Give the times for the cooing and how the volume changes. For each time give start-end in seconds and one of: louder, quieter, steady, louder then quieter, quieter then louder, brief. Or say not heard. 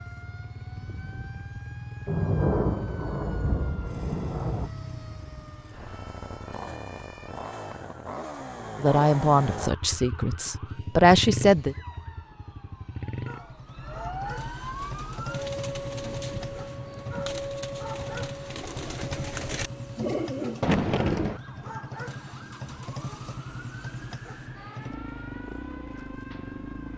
14.8-21.4 louder.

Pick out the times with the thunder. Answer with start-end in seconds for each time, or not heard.
2.0-4.7, 20.6-21.4.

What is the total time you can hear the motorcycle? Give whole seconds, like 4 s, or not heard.
27 s.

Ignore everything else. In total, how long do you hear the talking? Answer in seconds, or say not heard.
3 s.